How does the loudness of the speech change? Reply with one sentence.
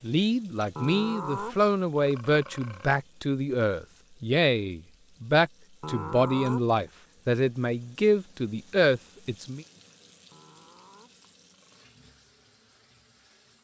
The volume of the speech stays about the same.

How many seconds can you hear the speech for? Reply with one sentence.
The speech can be heard for 10 seconds in total.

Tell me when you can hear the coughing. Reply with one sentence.
You can't hear the coughing here.